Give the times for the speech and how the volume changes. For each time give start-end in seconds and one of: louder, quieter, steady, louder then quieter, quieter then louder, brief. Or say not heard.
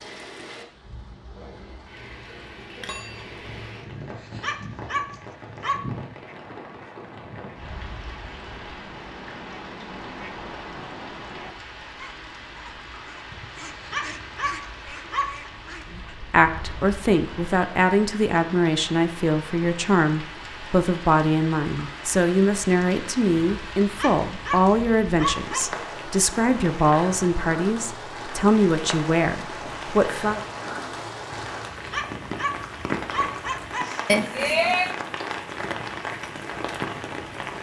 15.9-30.4 steady.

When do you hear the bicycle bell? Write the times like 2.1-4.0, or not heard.
2.8-3.4, 34.0-34.9.